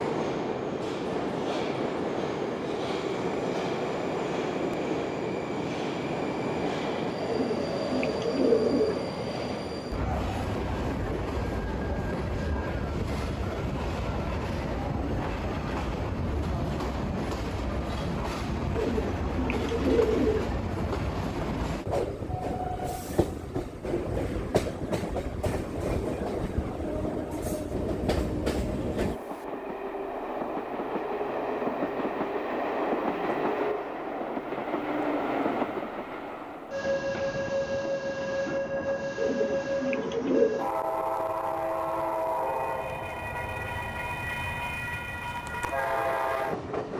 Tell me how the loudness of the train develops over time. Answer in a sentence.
The volume of the train stays about the same.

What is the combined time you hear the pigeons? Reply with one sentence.
The pigeons can be heard for 5 seconds in total.